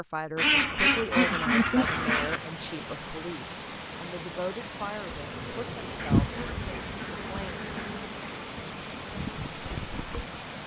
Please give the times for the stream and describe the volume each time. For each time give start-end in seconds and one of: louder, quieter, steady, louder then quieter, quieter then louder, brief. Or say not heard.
1.8-10.6 steady.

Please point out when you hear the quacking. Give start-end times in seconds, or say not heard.
0.3-2.4, 6.0-7.8.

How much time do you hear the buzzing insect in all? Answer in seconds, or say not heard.
5 s.